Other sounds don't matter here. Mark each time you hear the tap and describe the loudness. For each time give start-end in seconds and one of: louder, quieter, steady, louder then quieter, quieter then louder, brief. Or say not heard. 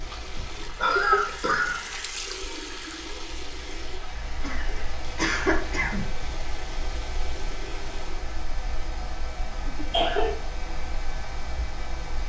0.0-8.3 quieter.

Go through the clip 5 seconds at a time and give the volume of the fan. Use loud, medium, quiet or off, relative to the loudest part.
medium, loud, loud.